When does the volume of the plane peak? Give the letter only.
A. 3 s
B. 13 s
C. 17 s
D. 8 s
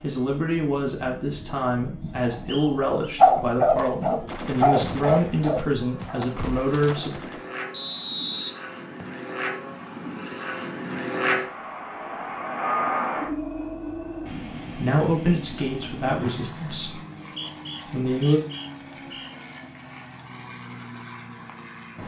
B.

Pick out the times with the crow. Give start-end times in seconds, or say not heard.
not heard.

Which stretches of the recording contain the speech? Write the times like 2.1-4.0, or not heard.
0.0-7.2, 14.8-17.0, 17.9-18.4.